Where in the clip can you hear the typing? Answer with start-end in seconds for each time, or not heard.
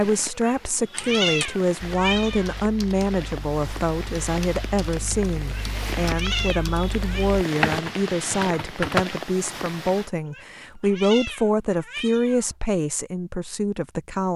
0.9-9.1.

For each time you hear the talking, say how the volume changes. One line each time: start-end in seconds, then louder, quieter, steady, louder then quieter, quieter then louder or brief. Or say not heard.
0.0-14.3 steady.